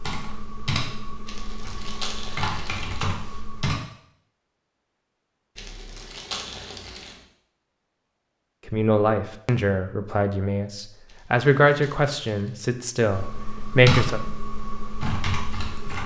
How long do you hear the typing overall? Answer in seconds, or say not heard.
7 s.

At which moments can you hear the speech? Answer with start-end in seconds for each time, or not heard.
8.7-14.2.